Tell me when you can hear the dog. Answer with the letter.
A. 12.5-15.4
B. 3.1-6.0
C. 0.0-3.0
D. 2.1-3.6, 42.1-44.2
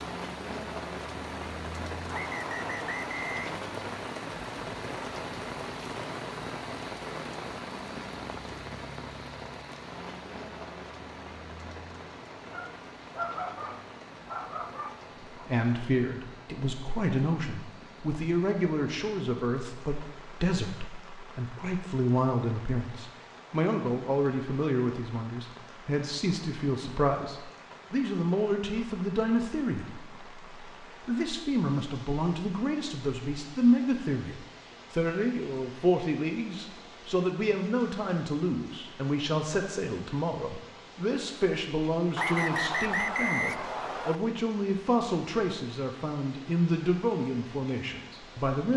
A.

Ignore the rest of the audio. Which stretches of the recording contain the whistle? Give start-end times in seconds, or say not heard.
2.1-3.6, 42.1-44.2.